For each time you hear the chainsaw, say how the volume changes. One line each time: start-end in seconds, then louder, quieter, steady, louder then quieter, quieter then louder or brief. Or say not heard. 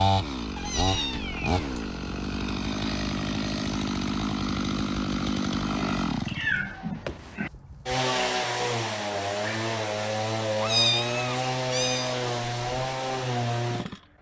0.0-14.0 steady.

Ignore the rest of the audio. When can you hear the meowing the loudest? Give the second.
11 s.